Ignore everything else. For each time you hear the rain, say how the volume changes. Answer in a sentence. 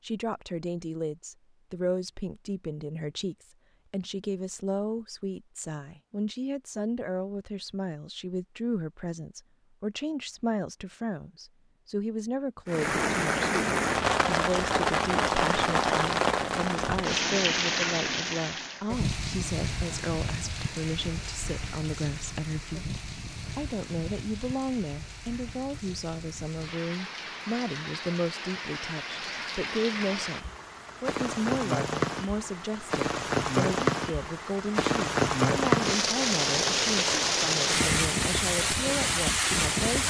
You can hear the rain from 12.7 to 40.0 s, getting quieter then louder.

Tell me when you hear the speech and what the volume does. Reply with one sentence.
You can hear the speech from 0.0 to 40.0 s, at a steady volume.